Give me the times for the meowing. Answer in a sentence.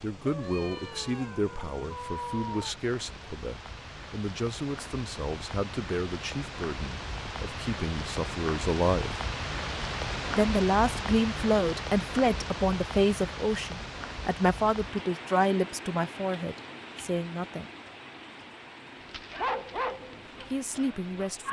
You can hear the meowing from 0.2 to 2.8 s.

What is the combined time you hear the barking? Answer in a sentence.
The barking can be heard for 2 seconds in total.